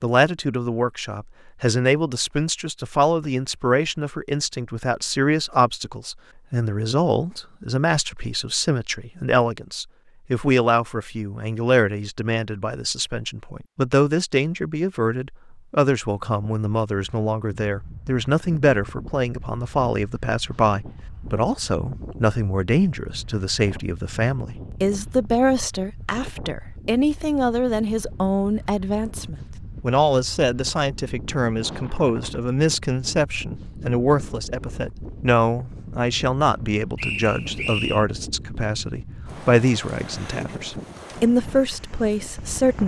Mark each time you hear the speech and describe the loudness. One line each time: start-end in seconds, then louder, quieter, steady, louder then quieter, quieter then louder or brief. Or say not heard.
0.0-42.8 steady.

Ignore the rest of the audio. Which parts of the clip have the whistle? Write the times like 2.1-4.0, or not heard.
37.0-38.0.